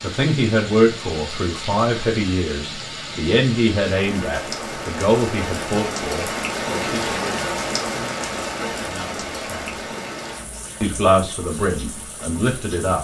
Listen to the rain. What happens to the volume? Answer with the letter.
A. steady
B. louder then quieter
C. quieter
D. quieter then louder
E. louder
B.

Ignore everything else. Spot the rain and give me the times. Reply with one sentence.
You can hear the rain from 0.0 to 12.9 s.